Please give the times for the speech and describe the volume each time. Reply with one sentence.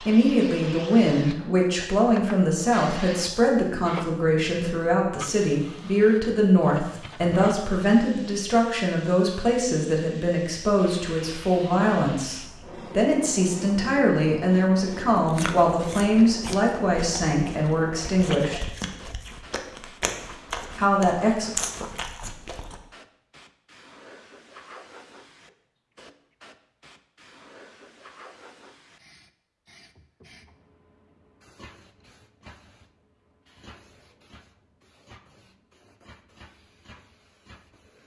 The speech can be heard from 0.0 to 18.7 s, at a steady volume; and briefly from 20.8 to 21.5 s.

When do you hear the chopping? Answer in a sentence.
The chopping can't be heard in this clip.